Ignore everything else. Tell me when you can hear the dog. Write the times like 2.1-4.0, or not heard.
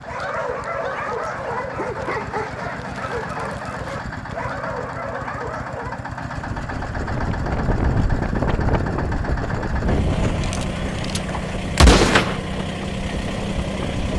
0.0-6.1.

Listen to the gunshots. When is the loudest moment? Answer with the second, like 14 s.
12 s.